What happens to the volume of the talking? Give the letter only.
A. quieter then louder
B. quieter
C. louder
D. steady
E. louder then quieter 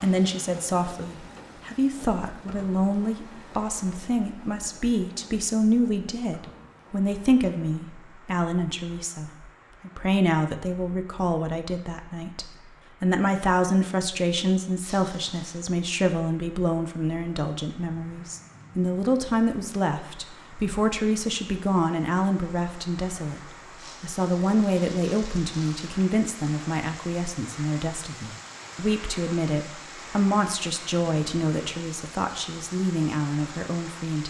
D.